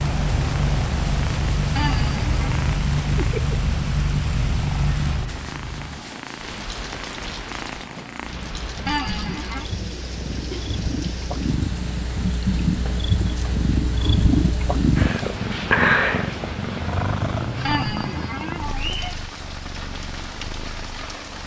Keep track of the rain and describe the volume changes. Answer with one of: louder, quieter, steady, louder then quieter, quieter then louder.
quieter.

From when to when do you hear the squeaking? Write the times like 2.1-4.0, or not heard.
1.8-2.6, 8.8-9.7, 17.6-19.0.